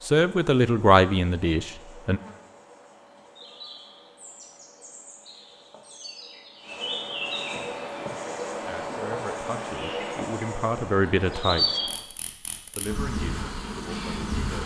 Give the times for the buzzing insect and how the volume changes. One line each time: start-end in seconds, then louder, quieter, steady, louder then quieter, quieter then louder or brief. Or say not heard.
0.0-14.6 louder.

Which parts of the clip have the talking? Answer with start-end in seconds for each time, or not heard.
0.1-2.2, 8.6-11.9, 12.7-14.6.